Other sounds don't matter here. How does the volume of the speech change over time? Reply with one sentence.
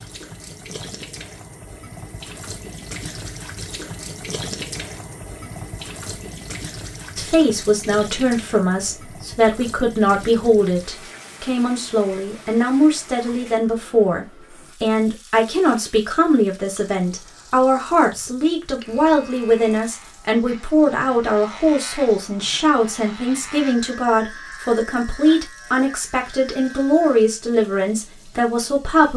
The volume of the speech stays about the same.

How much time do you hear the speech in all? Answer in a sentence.
The speech can be heard for 22 seconds in total.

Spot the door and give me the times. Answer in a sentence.
The door can't be heard in this clip.